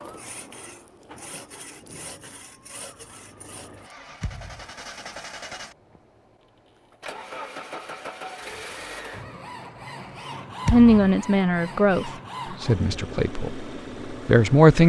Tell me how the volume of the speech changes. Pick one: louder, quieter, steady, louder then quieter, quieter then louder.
quieter then louder.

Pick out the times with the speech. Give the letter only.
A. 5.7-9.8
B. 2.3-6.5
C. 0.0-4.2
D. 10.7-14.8
D.